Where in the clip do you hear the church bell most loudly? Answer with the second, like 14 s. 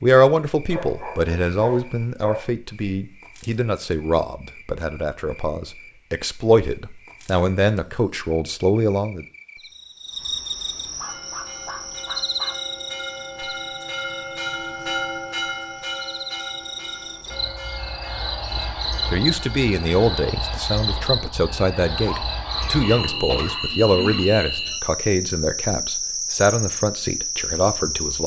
15 s.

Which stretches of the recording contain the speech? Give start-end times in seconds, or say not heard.
0.0-9.2, 18.6-28.2.